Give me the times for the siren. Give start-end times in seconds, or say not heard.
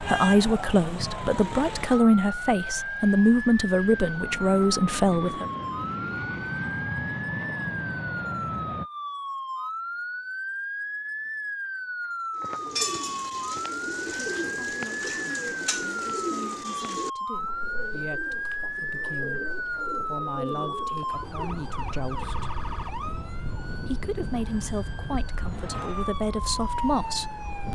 0.0-27.7.